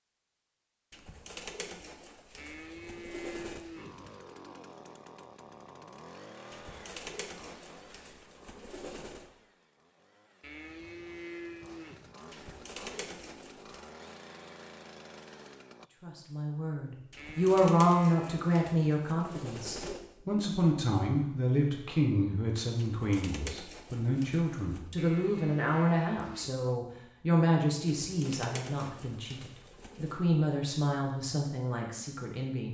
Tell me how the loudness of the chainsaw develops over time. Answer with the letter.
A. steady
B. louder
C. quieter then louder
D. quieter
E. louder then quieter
C.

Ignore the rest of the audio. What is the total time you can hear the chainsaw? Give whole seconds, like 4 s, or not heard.
12 s.